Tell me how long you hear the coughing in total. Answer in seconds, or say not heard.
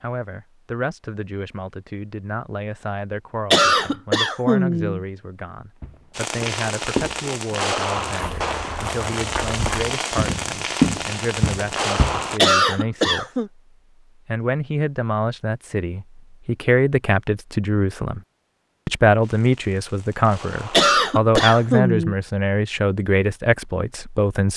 4 s.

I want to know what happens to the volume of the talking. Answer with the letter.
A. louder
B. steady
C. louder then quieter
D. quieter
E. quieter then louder
A.